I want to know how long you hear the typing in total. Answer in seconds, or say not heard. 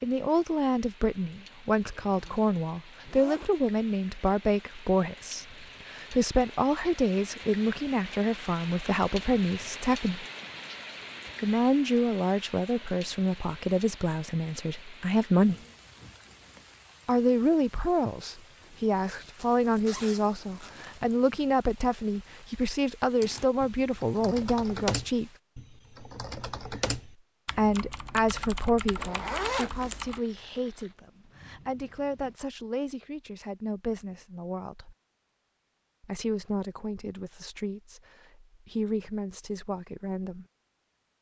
7 s.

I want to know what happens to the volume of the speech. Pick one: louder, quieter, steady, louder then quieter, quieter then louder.
quieter.